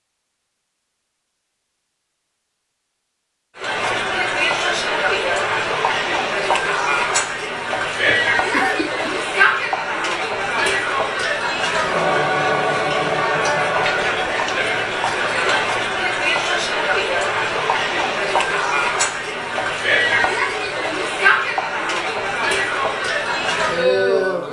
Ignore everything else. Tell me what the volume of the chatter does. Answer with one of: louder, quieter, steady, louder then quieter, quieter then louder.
steady.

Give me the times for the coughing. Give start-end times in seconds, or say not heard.
8.1-9.2.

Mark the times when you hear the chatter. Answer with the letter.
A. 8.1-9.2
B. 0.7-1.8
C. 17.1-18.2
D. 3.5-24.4
D.